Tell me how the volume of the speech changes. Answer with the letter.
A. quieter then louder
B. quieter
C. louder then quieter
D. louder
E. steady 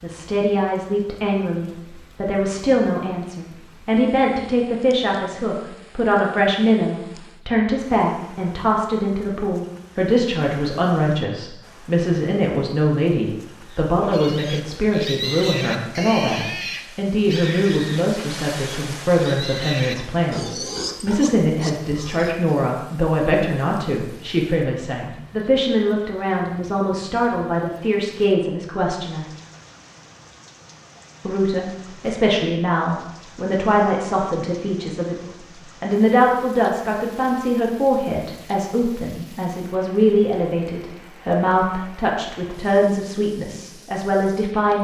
E.